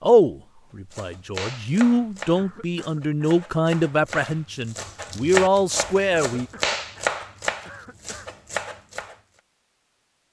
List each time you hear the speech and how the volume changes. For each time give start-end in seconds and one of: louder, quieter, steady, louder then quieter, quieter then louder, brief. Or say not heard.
0.0-6.5 louder.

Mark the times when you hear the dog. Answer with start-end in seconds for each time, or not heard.
not heard.